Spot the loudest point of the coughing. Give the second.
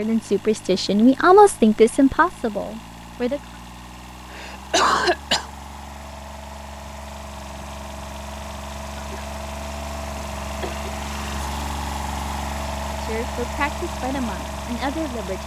5 s.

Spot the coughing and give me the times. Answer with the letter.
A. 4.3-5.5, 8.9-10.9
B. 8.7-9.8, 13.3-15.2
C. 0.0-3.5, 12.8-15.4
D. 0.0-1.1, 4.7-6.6
A.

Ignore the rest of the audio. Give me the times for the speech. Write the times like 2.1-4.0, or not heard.
0.0-3.5, 12.8-15.4.